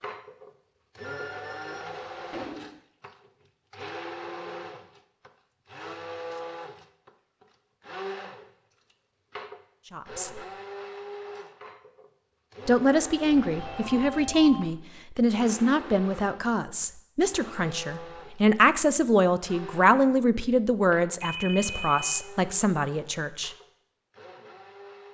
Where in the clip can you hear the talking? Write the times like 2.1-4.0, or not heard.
9.9-10.4, 12.7-23.5.